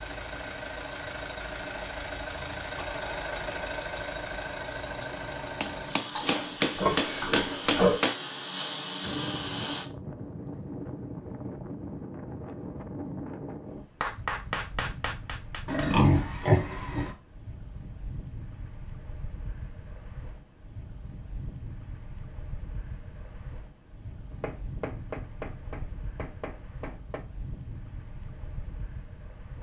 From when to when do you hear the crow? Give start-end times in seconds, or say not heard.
not heard.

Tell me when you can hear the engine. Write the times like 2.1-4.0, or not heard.
0.0-9.9.